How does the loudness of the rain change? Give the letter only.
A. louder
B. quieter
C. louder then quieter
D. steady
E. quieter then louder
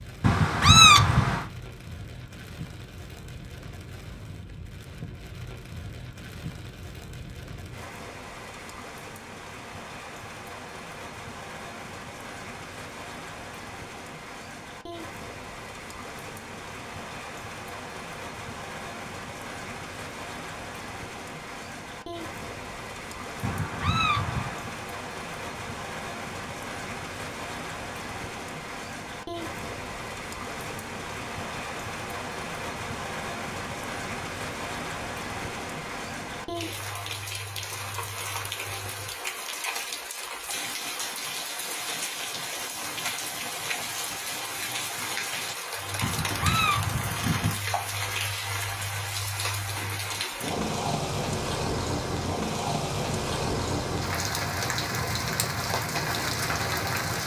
A.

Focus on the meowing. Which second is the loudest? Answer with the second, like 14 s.
1 s.